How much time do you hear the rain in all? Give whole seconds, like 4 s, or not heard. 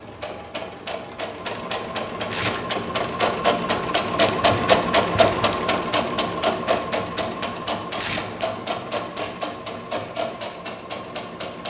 not heard.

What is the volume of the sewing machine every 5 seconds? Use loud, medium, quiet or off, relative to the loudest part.
loud, loud, medium.